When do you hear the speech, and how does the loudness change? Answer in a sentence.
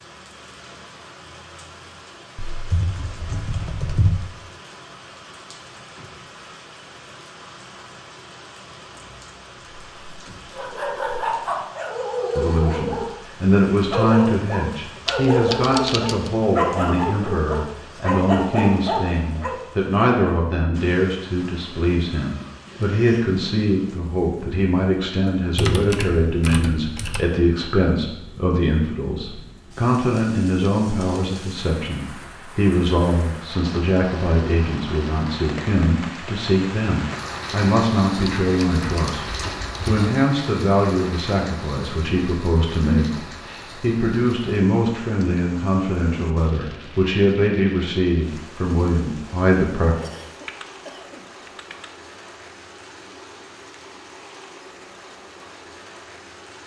The speech can be heard from 12.3 to 50.0 s, at a steady volume.